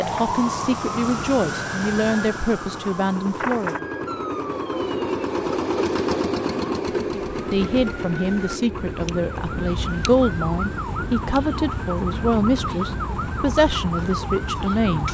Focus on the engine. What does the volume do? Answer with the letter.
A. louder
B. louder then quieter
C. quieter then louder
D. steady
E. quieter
B.